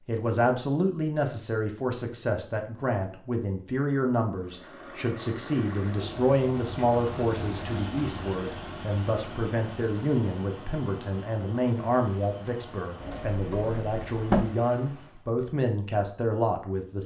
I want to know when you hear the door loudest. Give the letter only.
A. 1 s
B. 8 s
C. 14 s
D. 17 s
C.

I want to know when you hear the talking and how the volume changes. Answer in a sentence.
The talking can be heard from 0.1 to 17.0 s, at a steady volume.